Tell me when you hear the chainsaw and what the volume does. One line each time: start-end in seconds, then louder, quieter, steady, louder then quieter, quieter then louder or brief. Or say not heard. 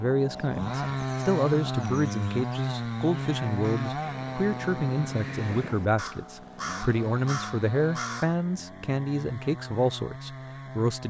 0.0-11.0 quieter.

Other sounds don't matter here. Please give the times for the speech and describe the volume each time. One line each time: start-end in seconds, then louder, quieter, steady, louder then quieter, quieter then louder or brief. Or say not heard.
0.0-11.0 steady.